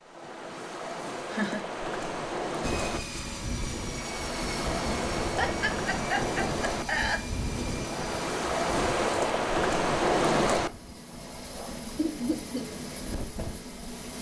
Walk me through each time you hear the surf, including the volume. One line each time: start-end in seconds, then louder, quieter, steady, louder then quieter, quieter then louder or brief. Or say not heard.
0.0-10.9 louder.